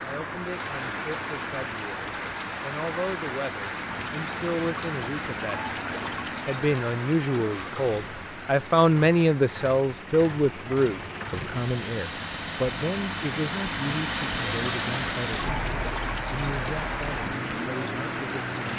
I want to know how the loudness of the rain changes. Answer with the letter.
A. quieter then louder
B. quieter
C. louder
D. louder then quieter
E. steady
A.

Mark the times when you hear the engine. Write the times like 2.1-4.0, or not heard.
3.8-18.7.